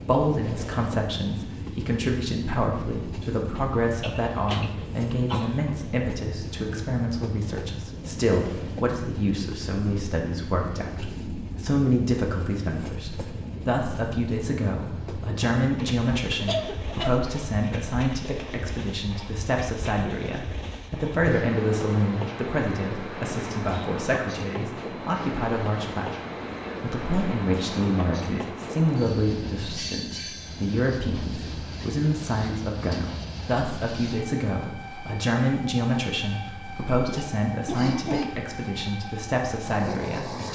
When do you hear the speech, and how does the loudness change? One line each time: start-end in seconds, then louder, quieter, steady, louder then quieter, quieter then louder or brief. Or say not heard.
0.0-40.5 steady.